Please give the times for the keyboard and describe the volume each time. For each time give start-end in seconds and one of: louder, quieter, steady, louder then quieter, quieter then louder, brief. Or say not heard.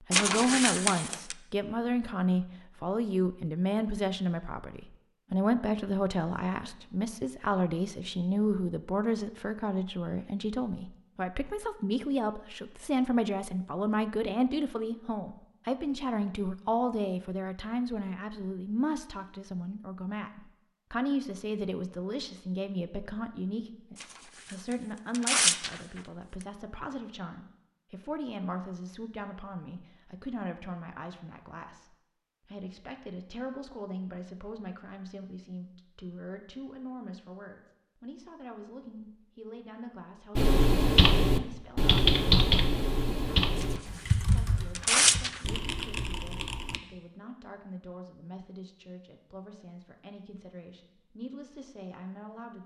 40.4-46.8 quieter.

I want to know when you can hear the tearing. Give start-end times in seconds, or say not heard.
0.1-1.4, 24.0-26.0, 43.6-45.4.